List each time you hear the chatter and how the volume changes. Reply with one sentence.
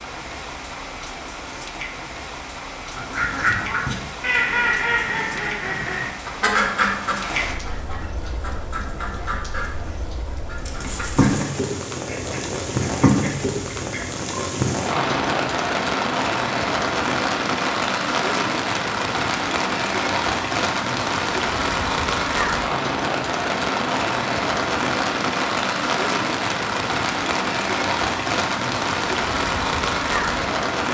The chatter can't be heard in this clip.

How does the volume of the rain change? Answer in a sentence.
The loudness of the rain goes up.